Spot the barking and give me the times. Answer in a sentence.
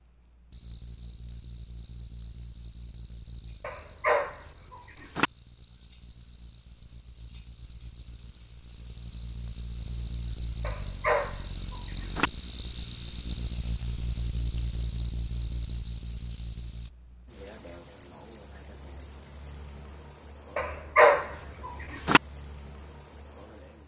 The barking can be heard from 3.6 to 5.3 s, from 10.6 to 12.3 s and from 20.6 to 22.2 s.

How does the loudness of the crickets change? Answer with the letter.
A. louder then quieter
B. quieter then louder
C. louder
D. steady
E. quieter
A.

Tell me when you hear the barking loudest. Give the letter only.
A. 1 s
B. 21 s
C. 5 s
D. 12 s
B.